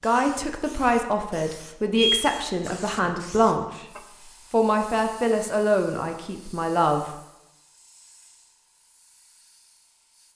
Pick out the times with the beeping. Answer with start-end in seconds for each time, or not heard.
1.9-3.1.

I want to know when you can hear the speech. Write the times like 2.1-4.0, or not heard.
0.0-3.9, 4.5-7.1.